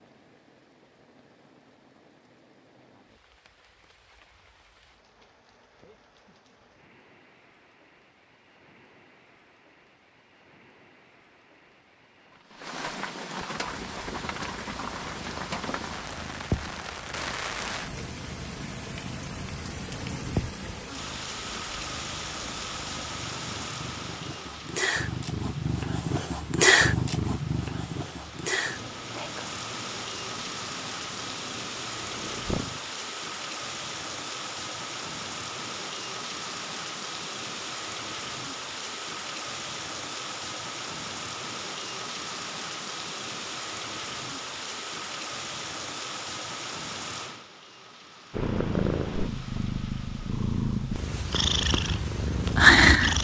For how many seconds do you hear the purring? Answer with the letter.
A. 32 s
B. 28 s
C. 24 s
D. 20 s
C.